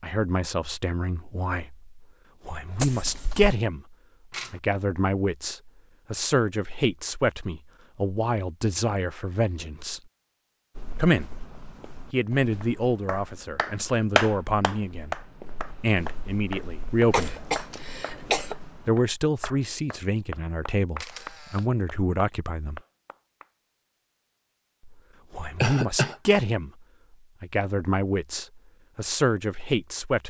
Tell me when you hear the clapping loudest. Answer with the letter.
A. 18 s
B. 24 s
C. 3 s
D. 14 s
D.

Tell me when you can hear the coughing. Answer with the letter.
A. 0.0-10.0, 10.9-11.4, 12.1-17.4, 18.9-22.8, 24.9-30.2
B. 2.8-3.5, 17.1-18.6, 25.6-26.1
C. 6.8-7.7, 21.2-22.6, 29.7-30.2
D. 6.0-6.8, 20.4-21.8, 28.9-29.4
B.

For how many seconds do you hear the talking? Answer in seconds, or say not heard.
25 s.